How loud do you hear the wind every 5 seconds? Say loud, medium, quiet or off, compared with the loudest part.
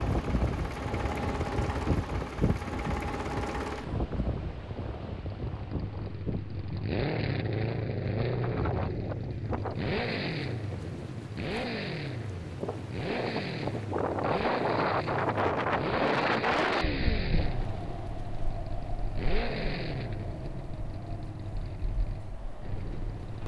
loud, medium, loud, loud, quiet.